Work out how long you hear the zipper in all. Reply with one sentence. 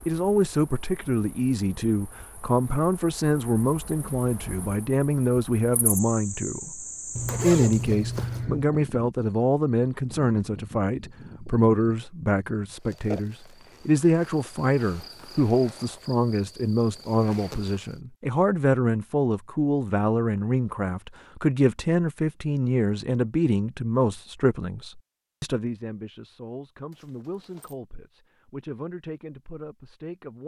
The zipper can be heard for 2 seconds in total.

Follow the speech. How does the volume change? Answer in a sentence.
The loudness of the speech goes down.